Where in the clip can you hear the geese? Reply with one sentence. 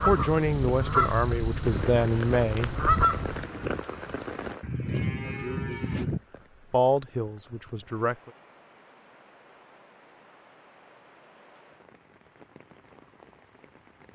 The geese can be heard from 0.0 to 3.5 s.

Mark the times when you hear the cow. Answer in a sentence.
The cow can be heard from 4.6 to 6.2 s.